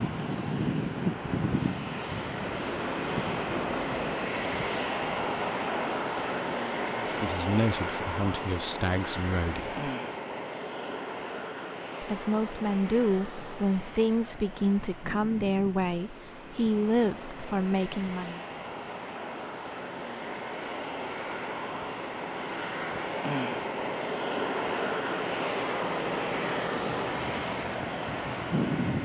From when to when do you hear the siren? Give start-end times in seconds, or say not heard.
not heard.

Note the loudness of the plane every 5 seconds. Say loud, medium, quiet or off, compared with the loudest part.
loud, loud, medium, medium, loud, loud.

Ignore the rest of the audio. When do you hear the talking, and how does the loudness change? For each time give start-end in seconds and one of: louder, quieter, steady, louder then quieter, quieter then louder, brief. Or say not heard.
7.0-9.9 brief
12.0-18.4 steady.